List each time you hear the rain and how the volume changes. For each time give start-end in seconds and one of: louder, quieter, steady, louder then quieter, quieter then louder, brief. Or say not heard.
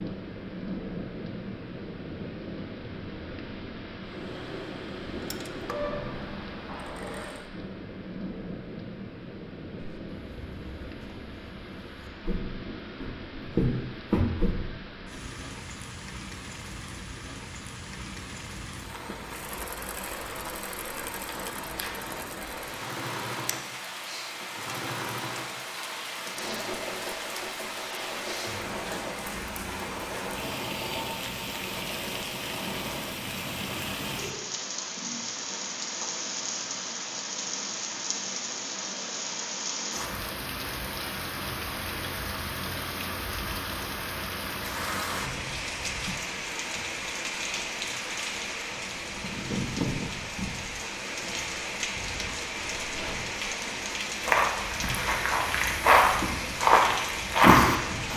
0.0-58.1 louder.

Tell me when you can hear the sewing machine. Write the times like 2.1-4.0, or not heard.
4.0-7.5, 19.3-33.2.